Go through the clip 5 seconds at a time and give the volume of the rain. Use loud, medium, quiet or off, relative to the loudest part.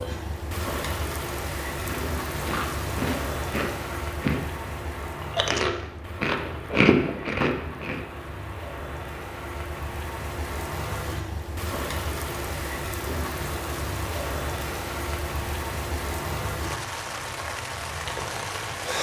loud, medium, loud, loud.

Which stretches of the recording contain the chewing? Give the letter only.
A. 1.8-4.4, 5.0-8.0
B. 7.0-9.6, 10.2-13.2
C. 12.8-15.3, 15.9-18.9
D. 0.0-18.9
A.